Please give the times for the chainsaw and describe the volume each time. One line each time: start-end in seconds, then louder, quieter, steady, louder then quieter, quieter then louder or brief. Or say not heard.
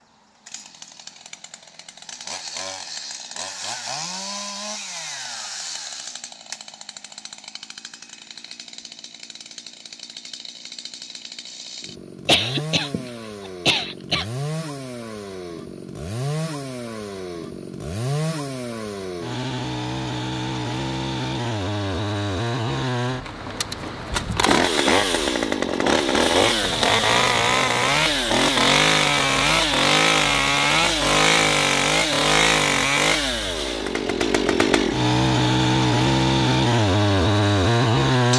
0.0-38.3 louder.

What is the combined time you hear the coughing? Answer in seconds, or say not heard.
2 s.